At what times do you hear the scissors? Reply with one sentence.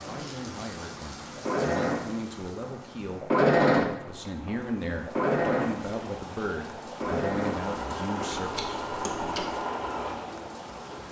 You can hear the scissors from 8.3 to 9.6 s.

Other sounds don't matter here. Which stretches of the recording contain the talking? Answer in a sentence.
The talking can be heard from 0.0 to 9.4 s.